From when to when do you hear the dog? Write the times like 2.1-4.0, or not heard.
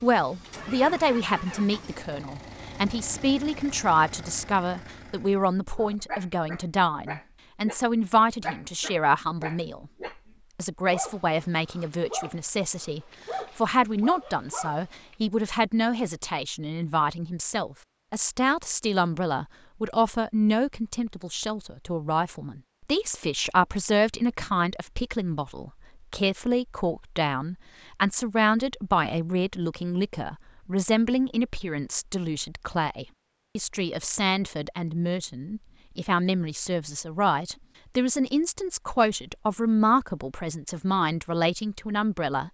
5.8-7.8, 8.4-10.2, 10.8-15.2.